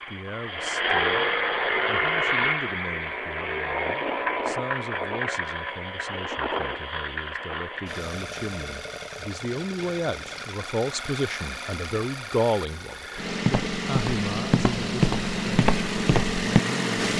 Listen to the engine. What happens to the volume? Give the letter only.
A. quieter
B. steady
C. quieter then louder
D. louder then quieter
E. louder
C.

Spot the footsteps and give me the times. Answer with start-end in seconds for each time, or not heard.
13.2-16.6.